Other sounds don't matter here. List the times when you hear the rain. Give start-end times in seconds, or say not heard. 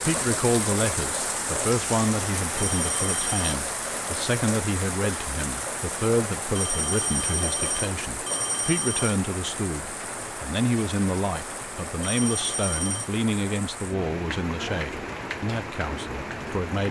0.0-16.8.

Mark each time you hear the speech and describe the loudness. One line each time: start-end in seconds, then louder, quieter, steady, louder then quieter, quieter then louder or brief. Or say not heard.
0.0-16.8 steady.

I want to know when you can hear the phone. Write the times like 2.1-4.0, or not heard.
2.5-3.5, 6.5-9.2, 12.0-13.1.